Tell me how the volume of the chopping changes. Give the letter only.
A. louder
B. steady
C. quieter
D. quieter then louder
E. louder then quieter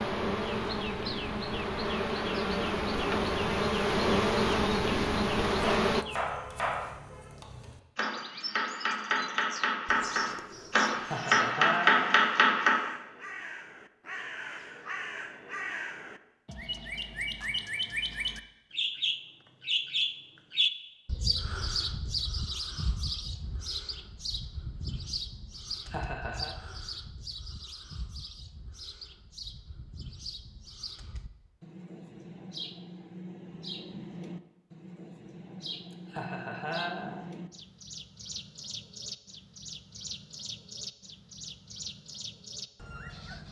A.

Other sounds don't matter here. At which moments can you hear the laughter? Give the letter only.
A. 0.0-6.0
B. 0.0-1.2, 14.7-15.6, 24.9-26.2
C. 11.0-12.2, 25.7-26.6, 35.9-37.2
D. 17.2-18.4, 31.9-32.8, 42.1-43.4
C.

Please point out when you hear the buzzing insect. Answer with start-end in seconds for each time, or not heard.
0.0-6.0.